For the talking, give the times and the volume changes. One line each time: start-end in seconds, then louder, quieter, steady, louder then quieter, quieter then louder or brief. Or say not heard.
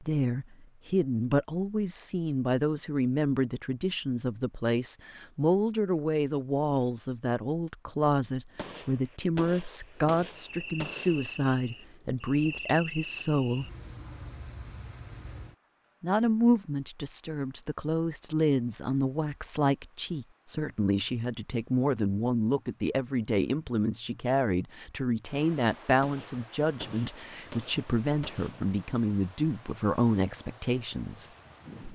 0.0-13.7 steady
16.0-31.3 steady.